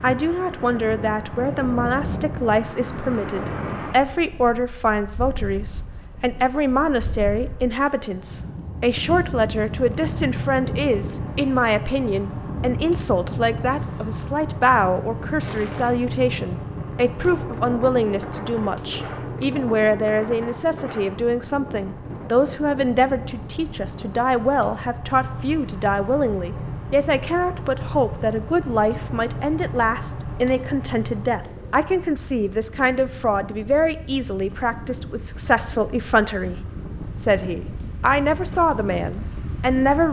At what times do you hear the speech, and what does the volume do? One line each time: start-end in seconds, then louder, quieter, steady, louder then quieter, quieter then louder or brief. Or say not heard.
0.0-36.6 steady
37.2-40.0 brief.